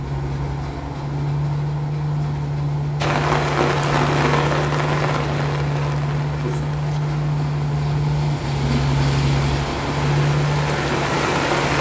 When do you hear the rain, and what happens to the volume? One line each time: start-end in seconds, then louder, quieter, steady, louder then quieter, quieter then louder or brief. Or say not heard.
3.0-11.7 quieter then louder.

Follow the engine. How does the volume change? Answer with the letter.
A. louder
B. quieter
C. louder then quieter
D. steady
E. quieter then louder
D.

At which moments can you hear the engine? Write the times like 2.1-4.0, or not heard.
0.0-11.7.